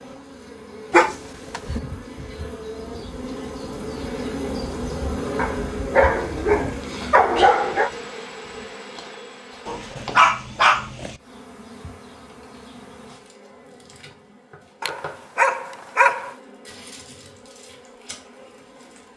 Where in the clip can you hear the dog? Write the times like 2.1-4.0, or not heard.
0.9-1.8, 5.3-7.9, 9.7-11.2, 14.8-16.4.